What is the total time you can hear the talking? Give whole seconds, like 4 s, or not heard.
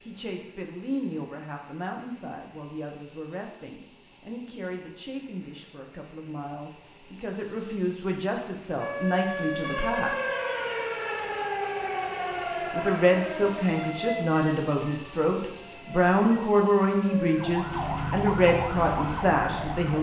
17 s.